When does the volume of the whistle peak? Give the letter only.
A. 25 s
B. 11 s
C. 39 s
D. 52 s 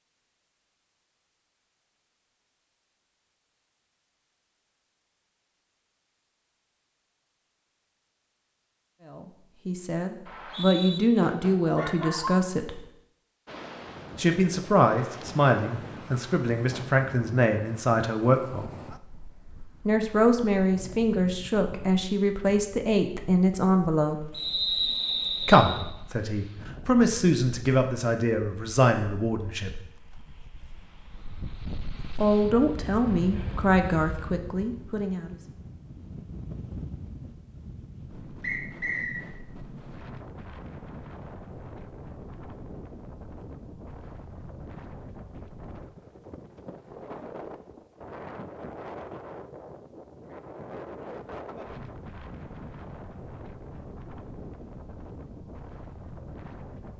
A.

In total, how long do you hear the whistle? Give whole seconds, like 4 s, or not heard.
3 s.